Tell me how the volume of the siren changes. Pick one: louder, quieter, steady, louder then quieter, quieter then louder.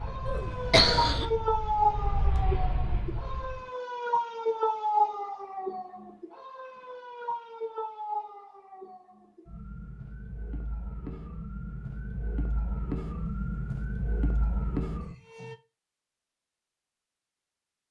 quieter then louder.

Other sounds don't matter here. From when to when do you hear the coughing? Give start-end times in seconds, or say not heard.
0.2-1.2.